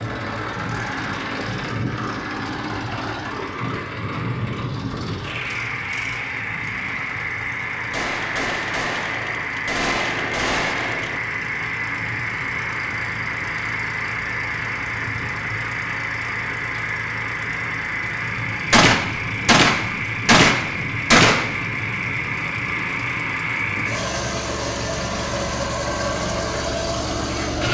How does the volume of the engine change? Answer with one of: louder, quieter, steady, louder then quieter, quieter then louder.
steady.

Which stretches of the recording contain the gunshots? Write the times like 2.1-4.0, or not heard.
7.9-11.2, 18.7-21.6.